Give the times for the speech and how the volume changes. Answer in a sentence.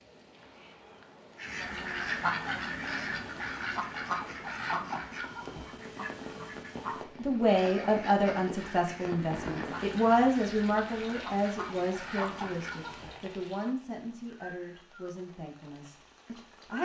You can hear the speech from 7.2 to 16.8 s, getting quieter.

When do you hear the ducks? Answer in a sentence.
The ducks can be heard from 1.4 to 13.2 s.